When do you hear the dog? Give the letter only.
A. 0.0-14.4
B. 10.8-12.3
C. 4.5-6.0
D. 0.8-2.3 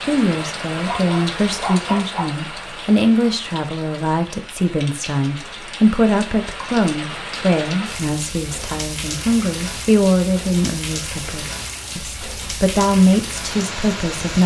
D.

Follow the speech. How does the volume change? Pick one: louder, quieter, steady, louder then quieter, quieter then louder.
steady.